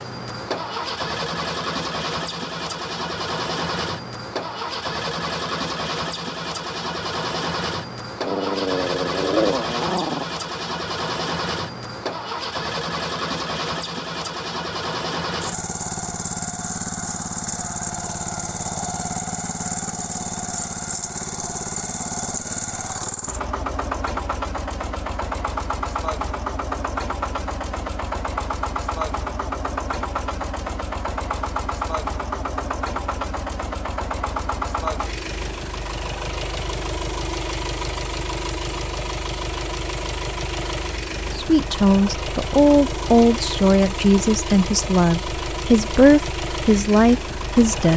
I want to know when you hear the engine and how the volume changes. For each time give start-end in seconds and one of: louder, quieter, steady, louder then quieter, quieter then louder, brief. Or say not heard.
0.0-47.9 steady.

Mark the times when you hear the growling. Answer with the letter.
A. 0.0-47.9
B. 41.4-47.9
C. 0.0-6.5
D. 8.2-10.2
D.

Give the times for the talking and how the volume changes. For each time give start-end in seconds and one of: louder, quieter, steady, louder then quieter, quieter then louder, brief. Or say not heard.
41.4-47.9 steady.